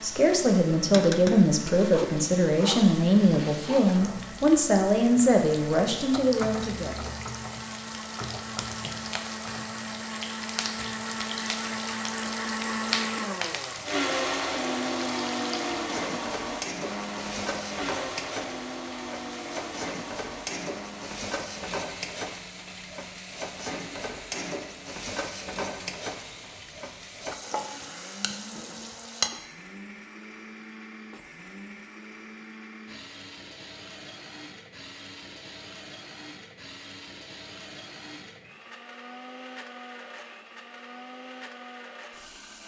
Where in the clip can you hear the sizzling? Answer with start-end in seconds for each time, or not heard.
0.0-29.3.